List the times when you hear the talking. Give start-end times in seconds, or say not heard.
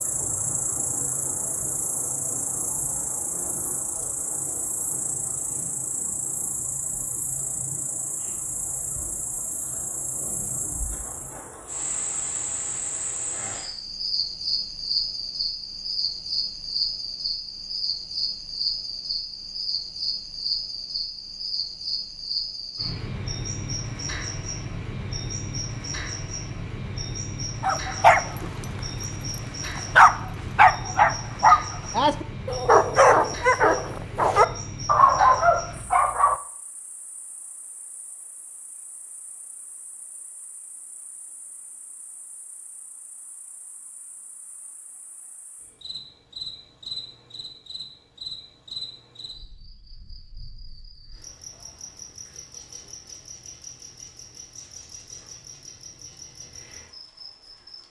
not heard.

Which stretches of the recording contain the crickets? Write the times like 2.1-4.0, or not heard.
0.0-57.8.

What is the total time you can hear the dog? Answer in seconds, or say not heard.
9 s.